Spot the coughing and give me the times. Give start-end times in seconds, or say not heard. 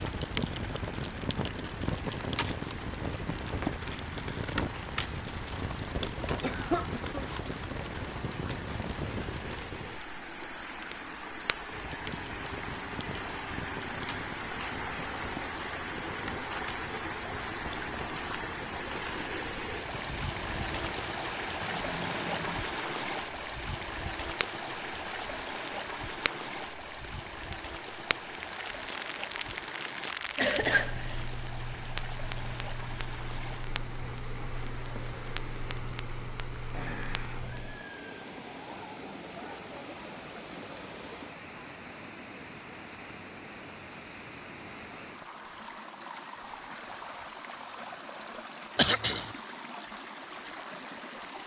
6.4-7.2, 30.4-31.2, 48.8-49.3.